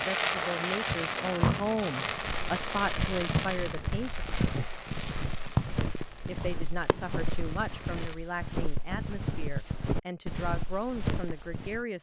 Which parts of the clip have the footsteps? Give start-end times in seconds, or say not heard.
2.0-11.8.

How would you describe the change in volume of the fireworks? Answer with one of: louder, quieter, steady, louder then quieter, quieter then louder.
quieter.